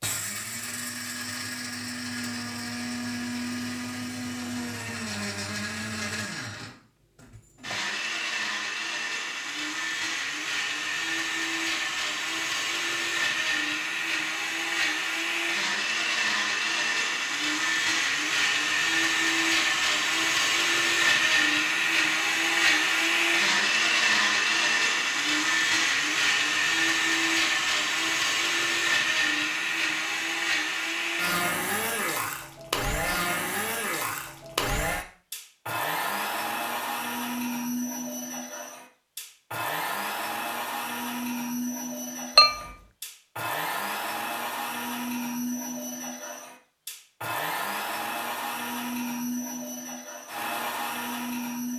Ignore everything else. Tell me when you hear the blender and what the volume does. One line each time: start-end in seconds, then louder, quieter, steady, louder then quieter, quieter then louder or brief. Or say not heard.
0.0-51.7 louder then quieter.